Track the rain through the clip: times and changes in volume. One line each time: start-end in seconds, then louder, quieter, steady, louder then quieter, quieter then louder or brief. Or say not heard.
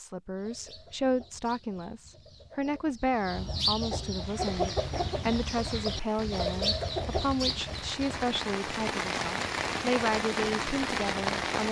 4.1-11.6 louder.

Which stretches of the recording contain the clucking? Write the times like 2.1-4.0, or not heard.
0.3-8.3.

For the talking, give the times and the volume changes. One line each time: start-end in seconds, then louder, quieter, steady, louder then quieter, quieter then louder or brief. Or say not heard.
0.0-11.6 steady.